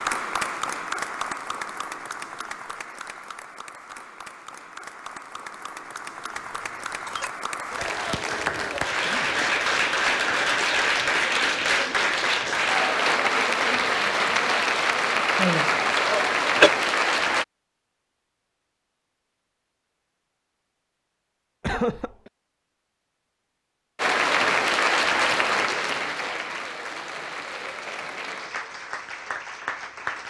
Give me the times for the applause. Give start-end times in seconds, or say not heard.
0.0-17.4, 23.9-30.2.